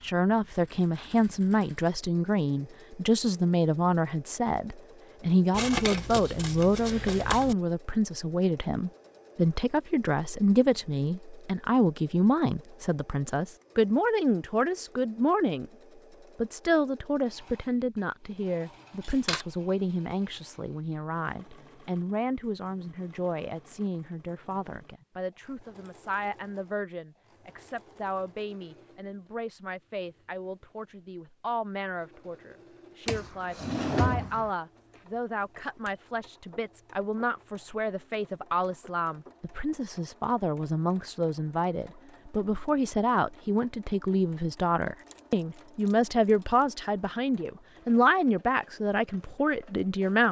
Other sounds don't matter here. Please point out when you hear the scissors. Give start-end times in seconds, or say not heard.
5.5-7.5, 19.0-19.4, 45.0-46.6.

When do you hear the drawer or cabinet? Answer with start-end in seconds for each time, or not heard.
33.0-34.5.